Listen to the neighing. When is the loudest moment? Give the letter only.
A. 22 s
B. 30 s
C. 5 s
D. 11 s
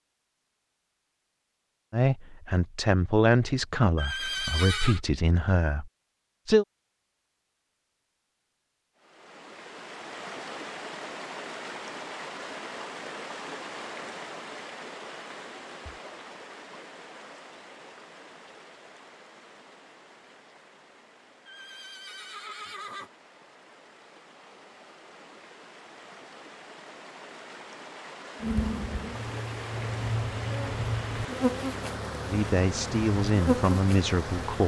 C.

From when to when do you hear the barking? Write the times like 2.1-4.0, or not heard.
not heard.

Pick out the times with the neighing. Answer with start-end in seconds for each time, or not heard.
4.0-5.0, 21.4-23.1.